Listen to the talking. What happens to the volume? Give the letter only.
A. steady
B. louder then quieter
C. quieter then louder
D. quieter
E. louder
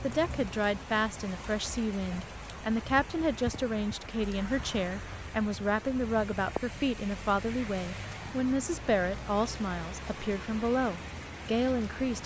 A.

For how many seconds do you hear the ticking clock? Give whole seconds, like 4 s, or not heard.
not heard.